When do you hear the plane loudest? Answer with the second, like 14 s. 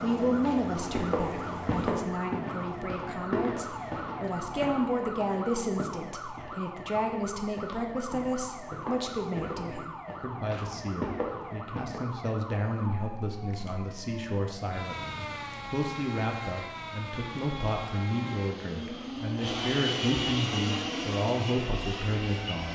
20 s.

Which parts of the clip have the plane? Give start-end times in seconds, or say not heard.
0.0-2.9, 17.1-22.7.